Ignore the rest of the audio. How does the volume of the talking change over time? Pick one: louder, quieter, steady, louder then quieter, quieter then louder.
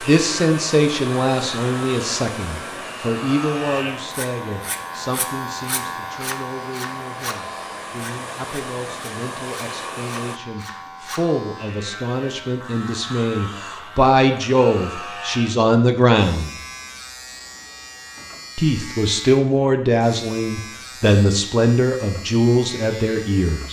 quieter then louder.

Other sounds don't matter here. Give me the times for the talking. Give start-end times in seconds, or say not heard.
0.0-16.6, 18.6-23.6.